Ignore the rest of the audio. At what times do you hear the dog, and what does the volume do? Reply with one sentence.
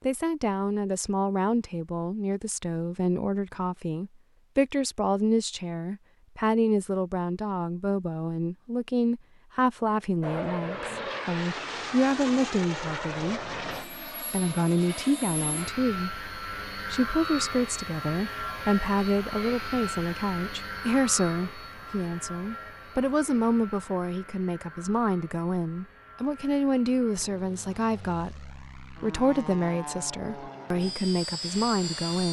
The dog can't be heard in this clip.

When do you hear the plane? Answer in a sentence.
The plane can be heard from 10.2 to 32.2 s.